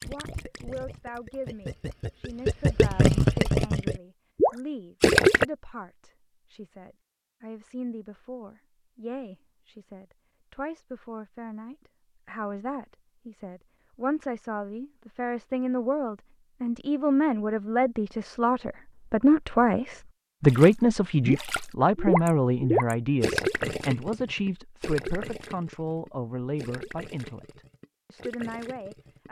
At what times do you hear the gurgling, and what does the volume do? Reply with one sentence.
You can hear the gurgling from 0.0 to 5.5 s, getting louder; and from 20.4 to 29.2 s, getting quieter.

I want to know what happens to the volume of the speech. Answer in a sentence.
The loudness of the speech goes up, then down.